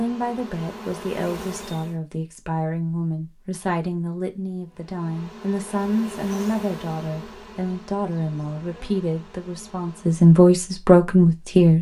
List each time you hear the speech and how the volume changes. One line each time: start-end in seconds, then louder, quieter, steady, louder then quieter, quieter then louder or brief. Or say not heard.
0.0-11.7 louder.